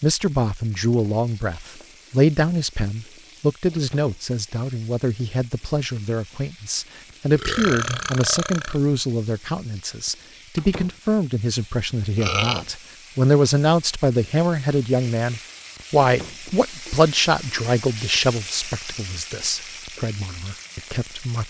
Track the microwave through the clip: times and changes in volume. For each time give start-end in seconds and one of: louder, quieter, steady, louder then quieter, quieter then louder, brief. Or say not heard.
not heard.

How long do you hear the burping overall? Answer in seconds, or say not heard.
2 s.